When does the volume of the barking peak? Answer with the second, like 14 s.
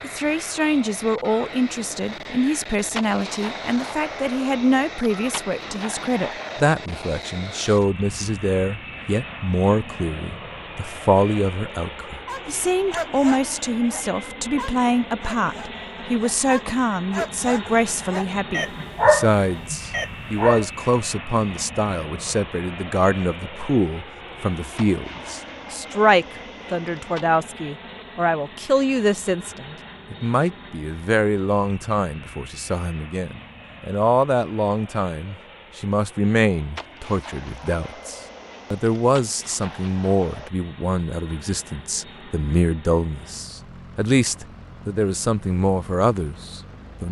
19 s.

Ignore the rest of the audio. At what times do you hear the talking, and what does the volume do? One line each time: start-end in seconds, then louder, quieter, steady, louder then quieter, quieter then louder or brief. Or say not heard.
0.0-47.0 steady.